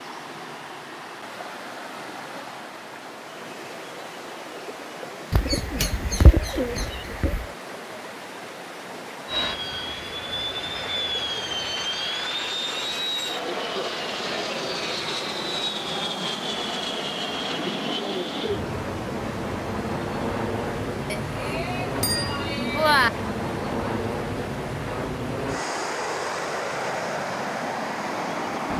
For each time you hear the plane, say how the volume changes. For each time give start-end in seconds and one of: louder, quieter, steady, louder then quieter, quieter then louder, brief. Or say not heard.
9.2-28.7 steady.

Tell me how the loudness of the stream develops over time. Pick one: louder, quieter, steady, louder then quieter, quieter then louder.
steady.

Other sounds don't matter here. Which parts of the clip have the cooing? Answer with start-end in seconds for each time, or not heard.
5.3-7.5.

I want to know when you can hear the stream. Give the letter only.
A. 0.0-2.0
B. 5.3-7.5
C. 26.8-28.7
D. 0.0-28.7
D.